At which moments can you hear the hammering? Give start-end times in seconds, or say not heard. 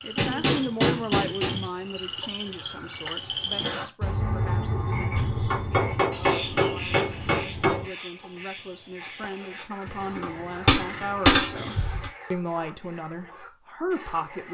0.1-1.7, 5.1-7.9, 10.2-12.1.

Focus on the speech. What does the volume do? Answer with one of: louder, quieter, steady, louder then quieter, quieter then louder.
quieter then louder.